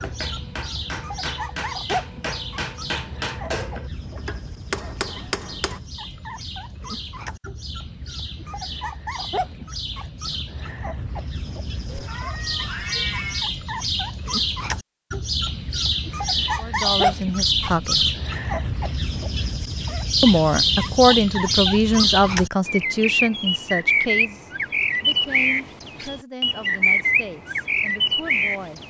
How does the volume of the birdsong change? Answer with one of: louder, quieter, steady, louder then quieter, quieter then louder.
louder.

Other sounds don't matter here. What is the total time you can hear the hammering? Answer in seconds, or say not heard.
6 s.